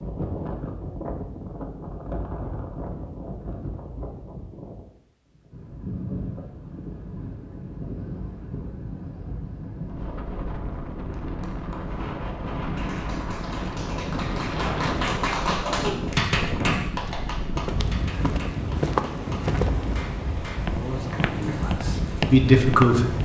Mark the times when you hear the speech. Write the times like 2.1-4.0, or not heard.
20.7-23.2.